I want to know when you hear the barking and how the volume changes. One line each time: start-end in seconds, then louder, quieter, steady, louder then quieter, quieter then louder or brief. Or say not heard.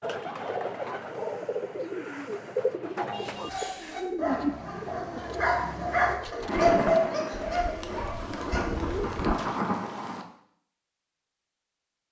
3.1-8.9 louder then quieter.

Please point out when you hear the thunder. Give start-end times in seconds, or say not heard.
6.5-10.2.